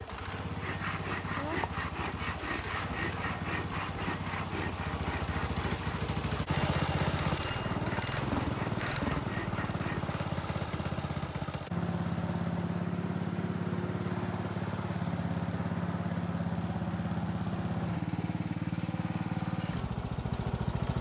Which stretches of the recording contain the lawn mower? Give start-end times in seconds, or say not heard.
0.0-20.9.